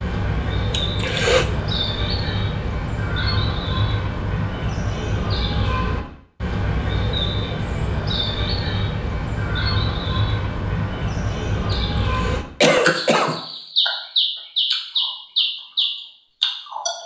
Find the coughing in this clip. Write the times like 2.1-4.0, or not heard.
0.7-1.5, 11.7-13.4.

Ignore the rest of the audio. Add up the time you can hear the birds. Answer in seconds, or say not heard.
17 s.